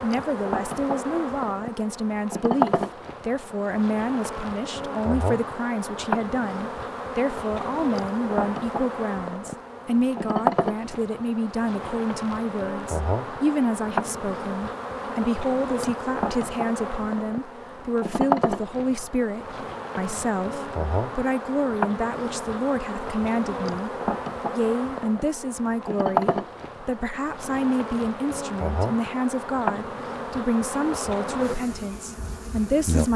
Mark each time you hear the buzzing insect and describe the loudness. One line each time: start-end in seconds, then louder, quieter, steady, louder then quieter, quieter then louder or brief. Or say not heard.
0.0-33.1 steady.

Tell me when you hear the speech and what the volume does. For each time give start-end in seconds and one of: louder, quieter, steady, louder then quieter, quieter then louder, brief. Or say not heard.
0.0-23.9 steady
24.6-33.1 steady.